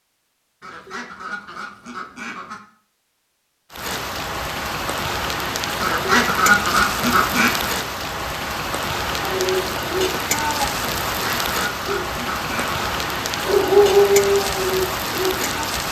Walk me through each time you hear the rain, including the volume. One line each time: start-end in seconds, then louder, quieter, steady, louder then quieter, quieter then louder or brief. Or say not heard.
3.7-15.8 steady.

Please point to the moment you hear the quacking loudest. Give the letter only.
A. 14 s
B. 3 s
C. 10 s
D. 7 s
D.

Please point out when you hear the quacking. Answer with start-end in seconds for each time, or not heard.
0.6-2.6, 5.8-7.5, 11.1-12.8.